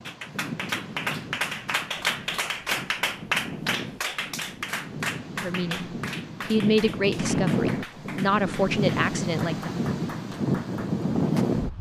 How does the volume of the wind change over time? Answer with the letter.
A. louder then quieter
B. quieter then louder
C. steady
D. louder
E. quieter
D.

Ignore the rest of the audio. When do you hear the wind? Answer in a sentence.
The wind can be heard from 0.0 to 11.7 s.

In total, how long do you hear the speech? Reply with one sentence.
You can hear the speech for 4 seconds altogether.